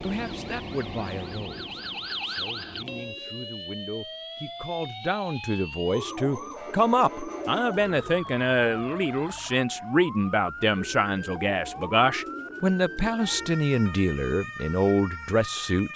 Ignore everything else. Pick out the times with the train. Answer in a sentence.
The train can be heard from 0.0 to 3.1 s.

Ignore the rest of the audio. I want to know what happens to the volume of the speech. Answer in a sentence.
The loudness of the speech goes up.